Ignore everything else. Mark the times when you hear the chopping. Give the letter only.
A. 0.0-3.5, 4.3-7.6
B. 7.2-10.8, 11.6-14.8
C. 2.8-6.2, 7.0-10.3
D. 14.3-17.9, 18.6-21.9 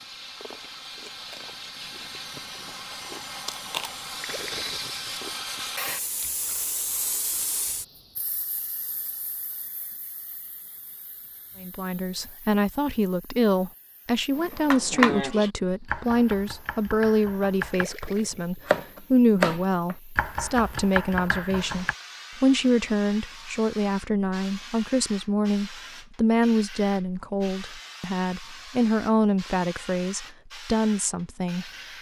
D.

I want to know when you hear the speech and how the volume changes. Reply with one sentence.
You can hear the speech from 11.6 to 31.7 s, at a steady volume.